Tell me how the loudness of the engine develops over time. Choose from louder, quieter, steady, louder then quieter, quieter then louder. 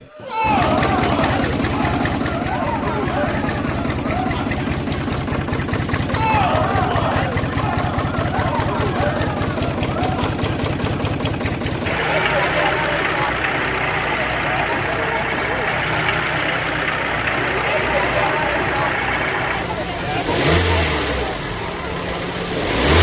steady.